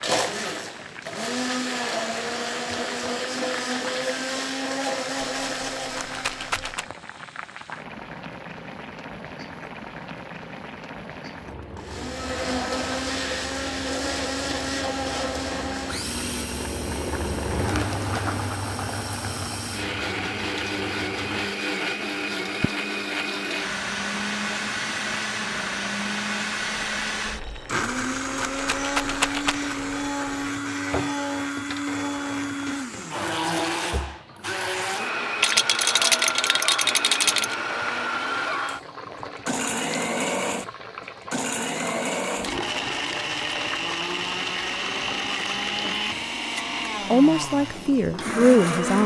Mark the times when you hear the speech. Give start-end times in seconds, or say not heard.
47.1-49.0.